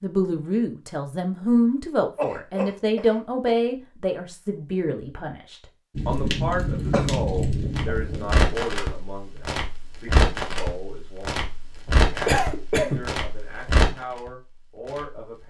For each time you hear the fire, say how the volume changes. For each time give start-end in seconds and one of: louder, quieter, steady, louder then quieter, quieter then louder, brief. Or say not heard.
6.0-15.4 steady.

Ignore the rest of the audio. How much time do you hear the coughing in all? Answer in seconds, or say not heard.
4 s.